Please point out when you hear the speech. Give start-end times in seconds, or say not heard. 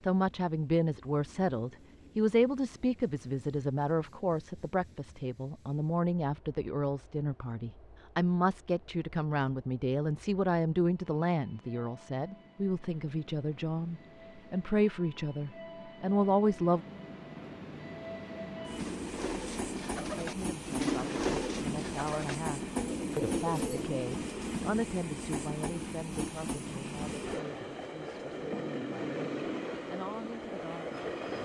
0.1-16.9, 20.1-31.1.